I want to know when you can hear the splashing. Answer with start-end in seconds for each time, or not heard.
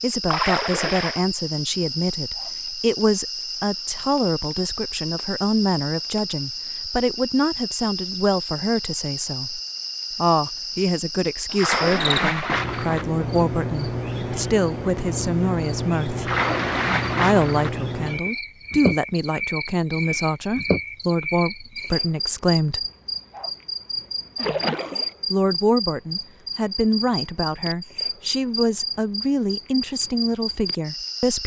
0.2-1.2, 11.6-13.1, 16.2-17.8, 24.4-25.1.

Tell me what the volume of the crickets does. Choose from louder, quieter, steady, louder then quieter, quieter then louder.
steady.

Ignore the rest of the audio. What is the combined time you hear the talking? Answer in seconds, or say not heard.
28 s.